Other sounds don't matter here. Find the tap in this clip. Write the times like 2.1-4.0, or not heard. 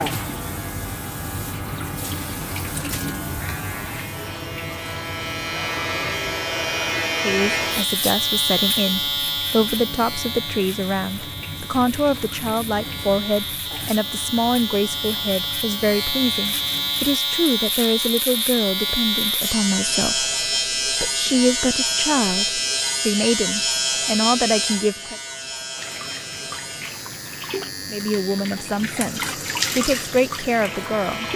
0.0-17.2, 25.8-31.3.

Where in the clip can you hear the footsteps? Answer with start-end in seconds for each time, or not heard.
not heard.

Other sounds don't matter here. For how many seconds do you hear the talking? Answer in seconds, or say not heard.
21 s.